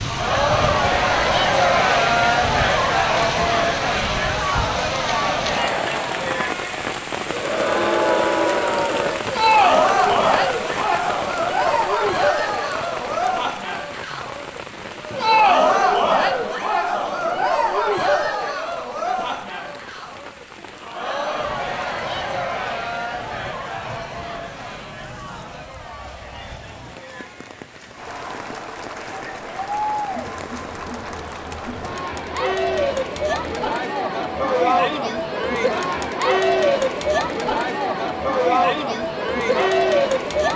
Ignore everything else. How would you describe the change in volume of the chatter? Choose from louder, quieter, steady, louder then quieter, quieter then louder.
quieter then louder.